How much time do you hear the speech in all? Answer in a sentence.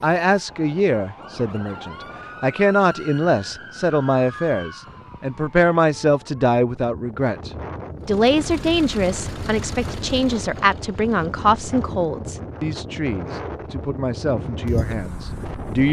You can hear the speech for 16 seconds altogether.